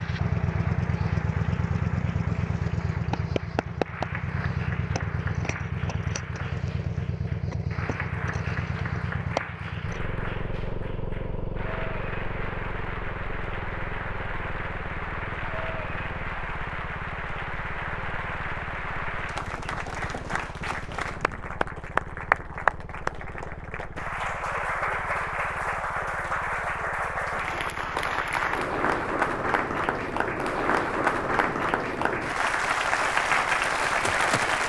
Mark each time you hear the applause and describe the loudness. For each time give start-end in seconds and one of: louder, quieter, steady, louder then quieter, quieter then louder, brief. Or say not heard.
0.0-34.6 louder.